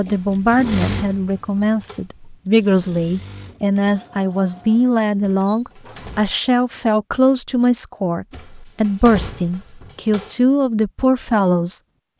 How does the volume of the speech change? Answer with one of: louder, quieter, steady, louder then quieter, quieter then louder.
steady.